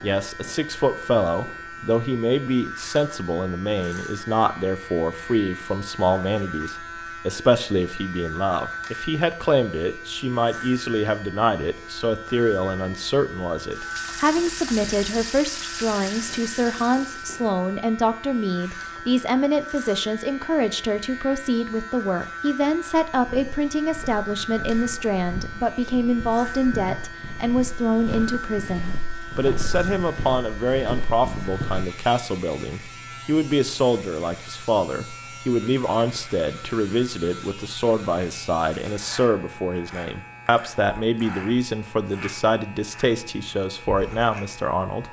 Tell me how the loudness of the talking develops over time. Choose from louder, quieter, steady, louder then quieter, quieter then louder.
steady.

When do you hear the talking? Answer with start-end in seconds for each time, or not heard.
0.0-45.0.